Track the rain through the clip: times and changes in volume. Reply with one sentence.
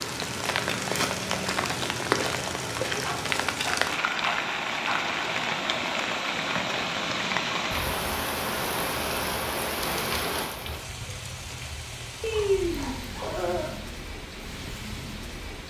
The rain can be heard from 0.0 to 15.6 s, getting quieter.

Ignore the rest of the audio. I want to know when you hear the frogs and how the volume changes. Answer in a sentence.
You can't hear the frogs here.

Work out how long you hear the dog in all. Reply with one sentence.
The dog can be heard for 4 seconds in total.